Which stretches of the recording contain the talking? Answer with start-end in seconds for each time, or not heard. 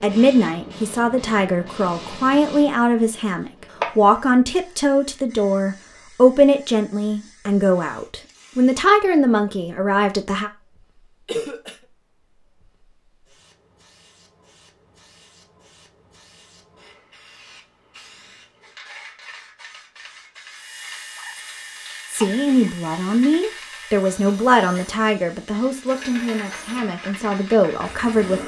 0.0-10.5, 22.1-28.4.